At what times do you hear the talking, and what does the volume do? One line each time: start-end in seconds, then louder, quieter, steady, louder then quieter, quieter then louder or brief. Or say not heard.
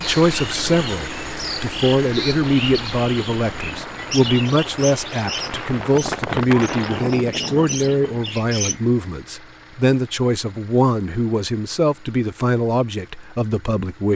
0.0-14.1 steady.